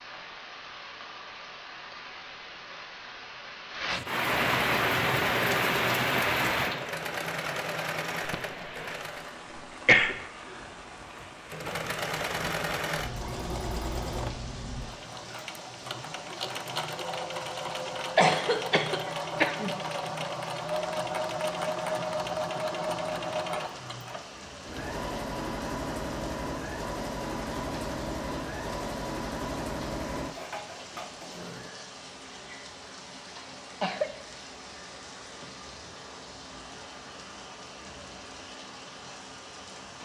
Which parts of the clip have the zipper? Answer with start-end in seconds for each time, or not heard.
not heard.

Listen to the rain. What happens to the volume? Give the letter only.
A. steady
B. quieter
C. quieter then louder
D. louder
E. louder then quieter
B.